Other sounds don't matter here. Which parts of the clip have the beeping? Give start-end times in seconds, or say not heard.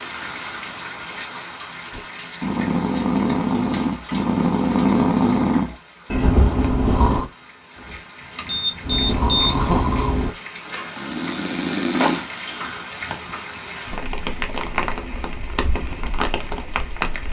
7.8-9.6.